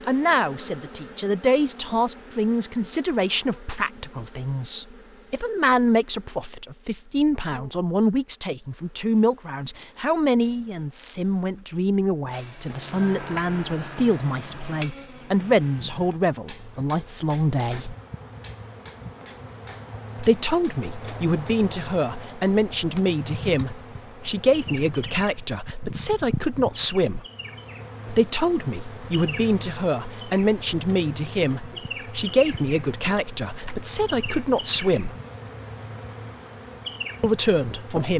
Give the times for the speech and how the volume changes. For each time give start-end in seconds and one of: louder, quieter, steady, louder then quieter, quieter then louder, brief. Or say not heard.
0.1-17.9 steady
20.1-27.2 steady
28.1-35.1 steady
37.2-38.1 brief.